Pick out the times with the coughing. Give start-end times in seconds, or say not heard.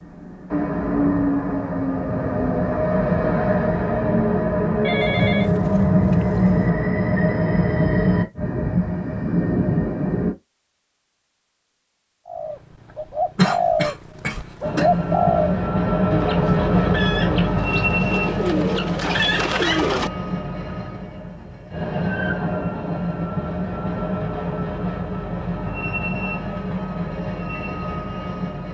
13.3-14.8.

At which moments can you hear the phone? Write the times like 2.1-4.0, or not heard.
4.8-6.7.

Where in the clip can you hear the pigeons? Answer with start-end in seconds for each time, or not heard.
12.2-20.1.